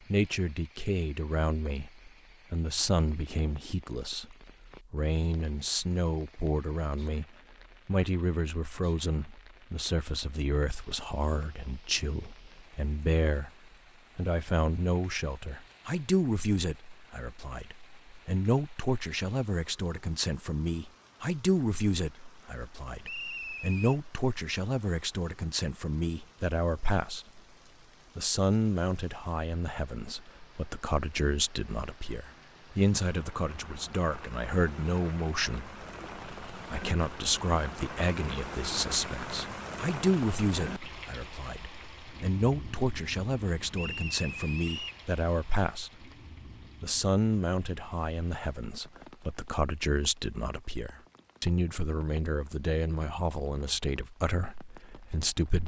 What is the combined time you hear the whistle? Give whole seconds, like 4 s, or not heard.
2 s.